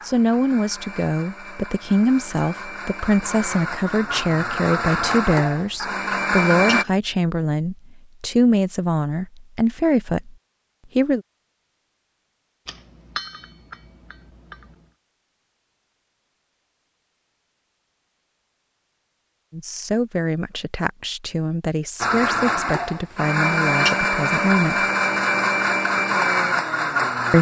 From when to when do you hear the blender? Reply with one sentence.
You can hear the blender from 0.0 to 6.8 s and from 22.0 to 27.3 s.